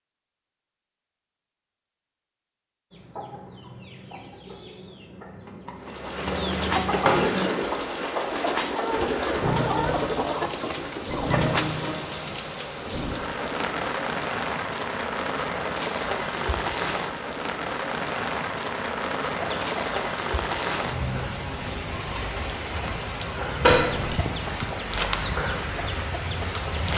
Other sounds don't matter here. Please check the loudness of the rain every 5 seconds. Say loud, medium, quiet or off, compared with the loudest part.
off, loud, loud, loud, loud, loud.